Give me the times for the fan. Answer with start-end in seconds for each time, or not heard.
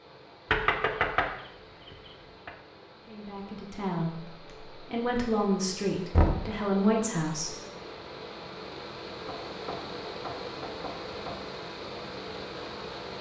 0.0-13.1.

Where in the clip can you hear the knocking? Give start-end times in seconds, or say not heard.
0.5-1.3, 6.1-6.5, 9.2-11.4.